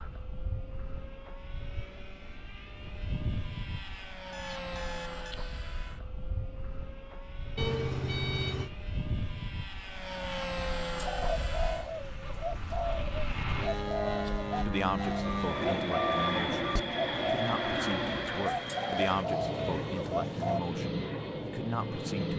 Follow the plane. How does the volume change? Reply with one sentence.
The loudness of the plane goes up.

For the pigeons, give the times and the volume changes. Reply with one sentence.
You can hear the pigeons from 10.9 to 20.6 s, at a steady volume.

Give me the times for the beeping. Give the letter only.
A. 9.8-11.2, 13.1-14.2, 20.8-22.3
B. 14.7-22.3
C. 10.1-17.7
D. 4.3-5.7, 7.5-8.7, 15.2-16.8
D.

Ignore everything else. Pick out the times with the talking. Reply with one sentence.
The talking can be heard from 14.7 to 22.3 s.